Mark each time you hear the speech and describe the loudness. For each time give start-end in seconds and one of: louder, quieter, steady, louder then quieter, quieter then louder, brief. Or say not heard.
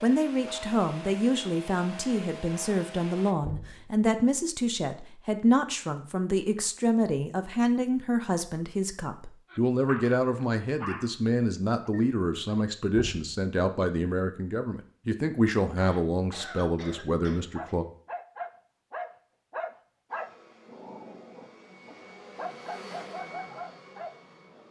0.0-17.9 steady.